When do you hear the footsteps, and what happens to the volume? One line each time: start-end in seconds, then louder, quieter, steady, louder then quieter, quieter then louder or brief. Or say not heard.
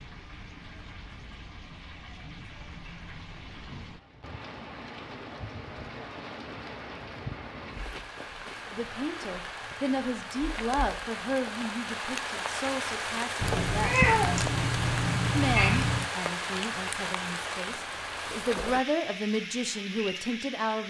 not heard.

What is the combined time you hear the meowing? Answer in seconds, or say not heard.
3 s.